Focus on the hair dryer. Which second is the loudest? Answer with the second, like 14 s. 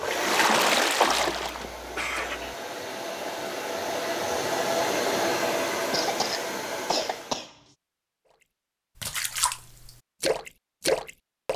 5 s.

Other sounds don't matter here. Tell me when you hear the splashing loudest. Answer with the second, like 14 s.
1 s.